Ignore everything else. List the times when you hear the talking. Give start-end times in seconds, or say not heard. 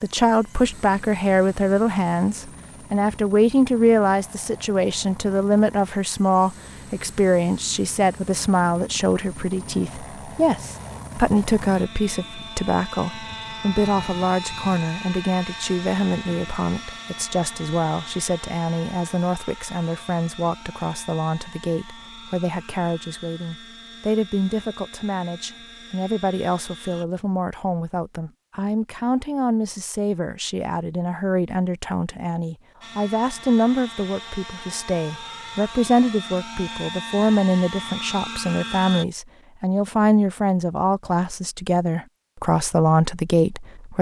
0.0-43.9.